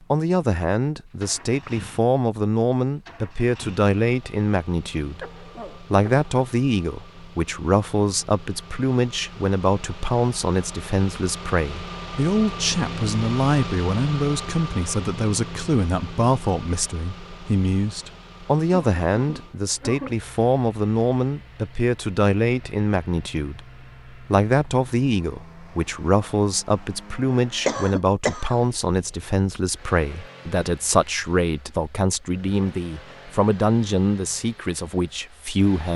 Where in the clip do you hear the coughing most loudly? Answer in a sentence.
The loudest moment of the coughing is at 28 seconds.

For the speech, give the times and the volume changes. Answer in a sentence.
The speech can be heard from 0.1 to 35.9 s, at a steady volume.